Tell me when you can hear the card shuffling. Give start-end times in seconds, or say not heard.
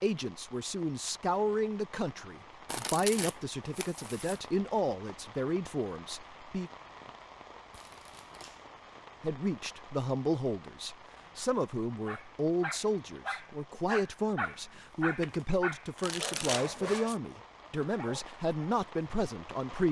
2.6-4.4, 7.7-8.8, 14.8-17.1.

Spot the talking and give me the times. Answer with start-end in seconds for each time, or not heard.
0.0-6.7, 9.2-19.8.